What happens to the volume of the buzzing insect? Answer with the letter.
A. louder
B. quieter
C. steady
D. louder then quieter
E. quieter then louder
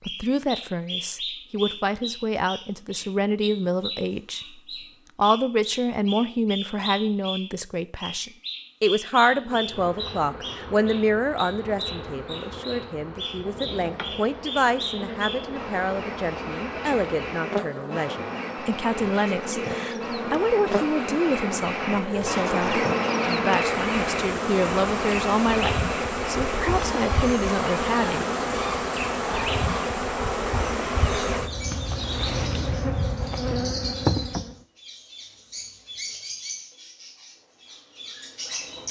A.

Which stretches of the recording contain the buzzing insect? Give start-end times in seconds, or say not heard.
9.2-34.5.